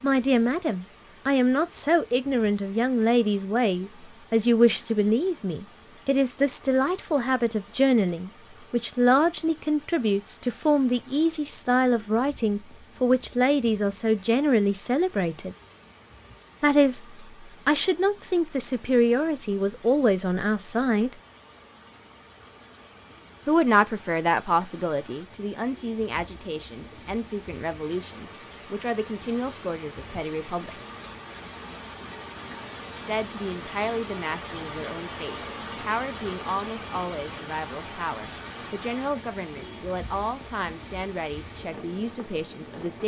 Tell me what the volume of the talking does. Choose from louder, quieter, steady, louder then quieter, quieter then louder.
quieter.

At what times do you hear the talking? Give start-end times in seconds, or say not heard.
0.0-15.6, 16.6-21.1, 23.4-30.8, 33.0-43.0.